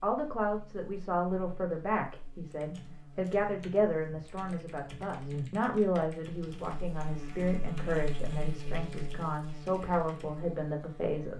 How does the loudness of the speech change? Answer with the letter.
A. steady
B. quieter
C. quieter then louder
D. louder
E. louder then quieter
A.